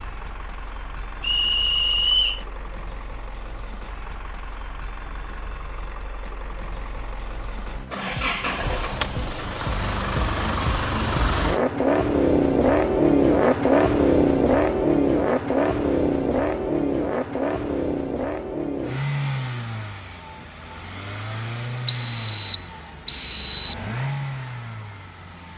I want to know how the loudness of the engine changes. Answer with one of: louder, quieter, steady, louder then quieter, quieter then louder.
louder then quieter.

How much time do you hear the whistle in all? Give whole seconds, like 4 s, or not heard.
3 s.